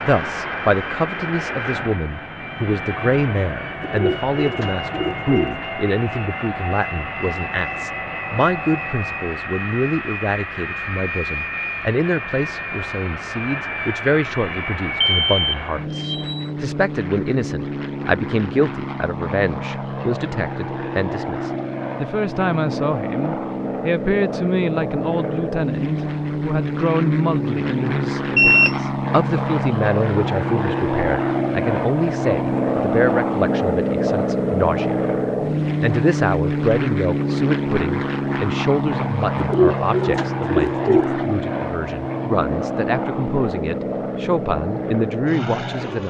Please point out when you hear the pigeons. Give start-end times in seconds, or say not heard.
3.8-5.7, 39.4-41.2.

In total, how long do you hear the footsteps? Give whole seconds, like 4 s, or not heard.
not heard.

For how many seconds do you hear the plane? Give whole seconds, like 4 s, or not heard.
46 s.